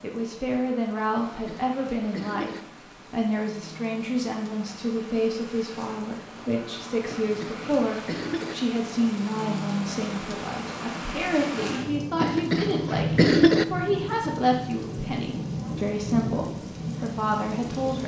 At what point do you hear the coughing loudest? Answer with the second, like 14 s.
13 s.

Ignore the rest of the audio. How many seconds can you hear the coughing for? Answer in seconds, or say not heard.
4 s.